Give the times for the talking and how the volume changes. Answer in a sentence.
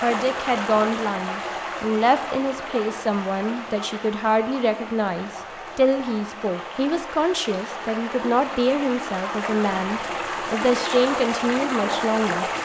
You can hear the talking from 0.0 to 12.5 s, at a steady volume.